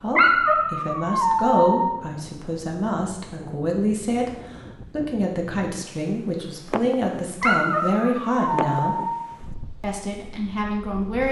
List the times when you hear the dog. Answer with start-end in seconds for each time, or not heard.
0.1-2.0, 7.4-9.2.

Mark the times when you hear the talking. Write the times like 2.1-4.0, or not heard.
0.0-4.3, 4.9-9.1, 9.8-11.2.